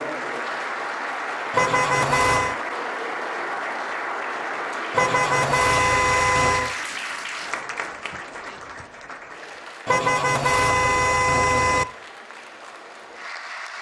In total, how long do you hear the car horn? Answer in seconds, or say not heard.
5 s.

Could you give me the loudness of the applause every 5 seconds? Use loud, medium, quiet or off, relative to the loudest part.
loud, loud, medium.